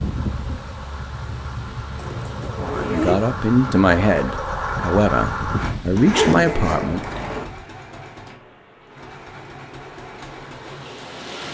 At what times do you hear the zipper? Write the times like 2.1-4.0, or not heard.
1.9-3.2, 6.0-7.5.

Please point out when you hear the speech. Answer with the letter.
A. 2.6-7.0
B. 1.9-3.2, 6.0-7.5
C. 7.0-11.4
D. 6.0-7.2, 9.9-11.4
A.